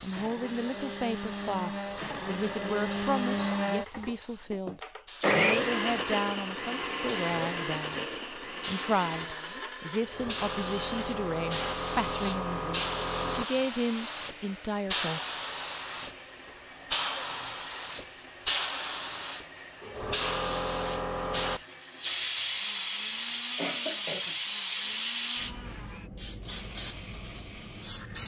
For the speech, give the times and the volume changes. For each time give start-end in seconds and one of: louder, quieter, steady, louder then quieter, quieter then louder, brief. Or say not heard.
0.0-15.2 steady.